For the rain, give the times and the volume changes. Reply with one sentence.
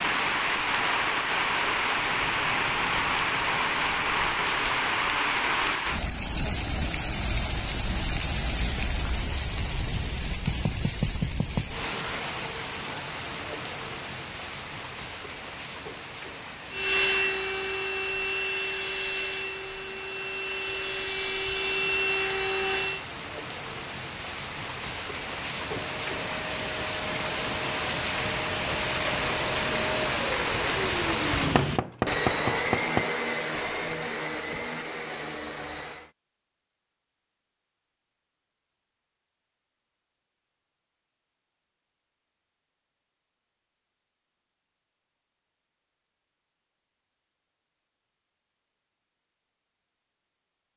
The rain can be heard from 0.0 to 31.8 s, getting quieter then louder.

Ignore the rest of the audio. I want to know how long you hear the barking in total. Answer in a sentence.
The barking can't be heard in this clip.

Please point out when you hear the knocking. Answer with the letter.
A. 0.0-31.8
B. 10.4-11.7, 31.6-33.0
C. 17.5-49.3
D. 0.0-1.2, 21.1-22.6
B.